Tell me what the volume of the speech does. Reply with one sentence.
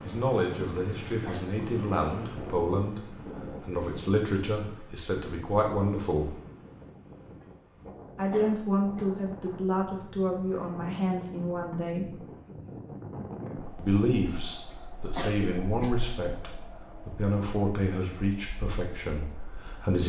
The volume of the speech stays about the same.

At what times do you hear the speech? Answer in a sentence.
The speech can be heard from 0.0 to 6.3 s, from 8.2 to 12.2 s and from 13.8 to 20.0 s.